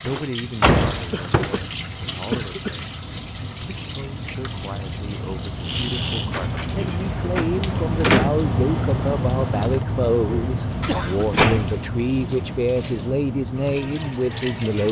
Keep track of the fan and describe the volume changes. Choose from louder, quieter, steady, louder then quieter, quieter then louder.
louder then quieter.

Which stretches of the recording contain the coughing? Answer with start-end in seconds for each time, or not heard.
1.1-1.7, 2.3-2.8, 5.6-6.4, 10.7-11.3.